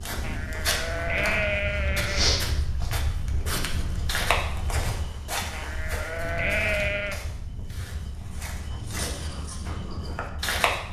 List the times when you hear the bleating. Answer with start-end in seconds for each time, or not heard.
0.2-2.5, 5.5-7.2.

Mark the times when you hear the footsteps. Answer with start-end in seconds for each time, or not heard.
0.0-10.8.